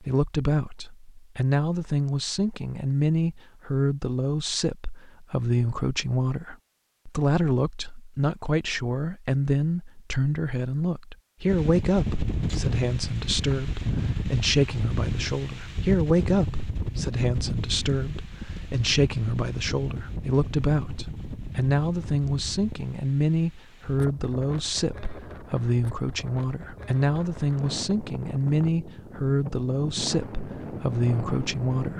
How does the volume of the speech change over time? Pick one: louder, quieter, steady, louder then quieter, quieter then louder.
steady.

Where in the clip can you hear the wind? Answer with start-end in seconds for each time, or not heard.
11.4-31.9.